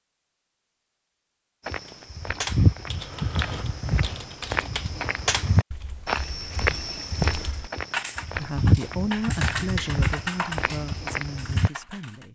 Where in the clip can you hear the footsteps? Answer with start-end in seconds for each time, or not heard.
1.6-11.7.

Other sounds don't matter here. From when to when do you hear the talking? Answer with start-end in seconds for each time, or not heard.
8.3-12.2.